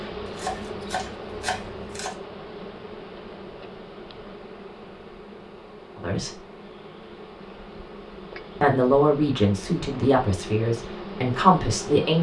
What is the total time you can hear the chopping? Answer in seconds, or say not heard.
2 s.